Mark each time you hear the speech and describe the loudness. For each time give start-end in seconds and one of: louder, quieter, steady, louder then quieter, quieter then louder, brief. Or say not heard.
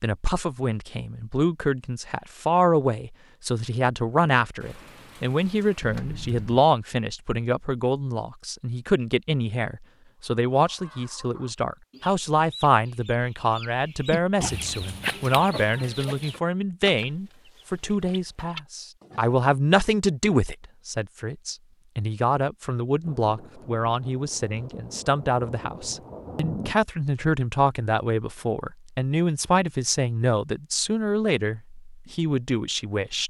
0.0-33.2 steady.